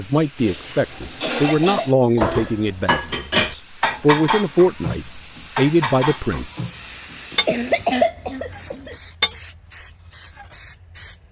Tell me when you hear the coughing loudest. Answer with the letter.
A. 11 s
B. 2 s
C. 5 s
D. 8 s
D.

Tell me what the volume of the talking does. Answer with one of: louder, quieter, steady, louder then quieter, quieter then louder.
quieter then louder.